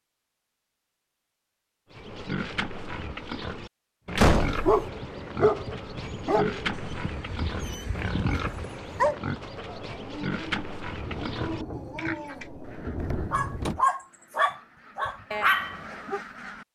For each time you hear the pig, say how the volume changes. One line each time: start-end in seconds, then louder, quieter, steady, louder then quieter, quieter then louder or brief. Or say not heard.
1.9-12.5 steady.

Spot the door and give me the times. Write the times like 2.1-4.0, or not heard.
4.2-4.8, 12.9-13.8.